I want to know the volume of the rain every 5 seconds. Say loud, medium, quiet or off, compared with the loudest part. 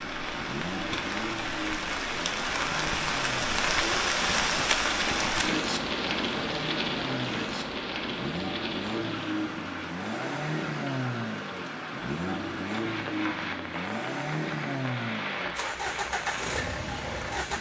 loud, loud, medium, medium.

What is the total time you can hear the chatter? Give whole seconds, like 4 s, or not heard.
not heard.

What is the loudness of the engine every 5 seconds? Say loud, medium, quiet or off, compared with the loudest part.
medium, loud, loud, loud.